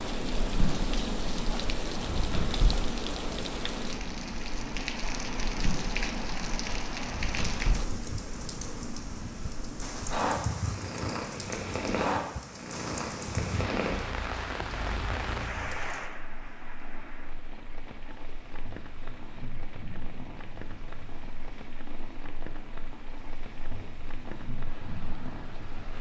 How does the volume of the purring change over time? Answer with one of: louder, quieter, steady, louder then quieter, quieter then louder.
quieter.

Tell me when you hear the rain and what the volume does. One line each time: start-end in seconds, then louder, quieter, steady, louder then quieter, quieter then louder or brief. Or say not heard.
0.0-25.9 quieter.